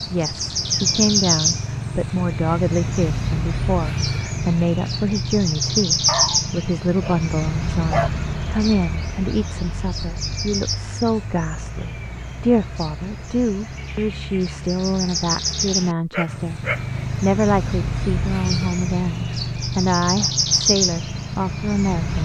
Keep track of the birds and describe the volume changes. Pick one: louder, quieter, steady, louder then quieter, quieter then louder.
quieter then louder.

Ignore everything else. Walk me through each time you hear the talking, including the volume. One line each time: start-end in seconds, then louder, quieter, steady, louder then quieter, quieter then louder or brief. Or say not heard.
0.1-22.2 steady.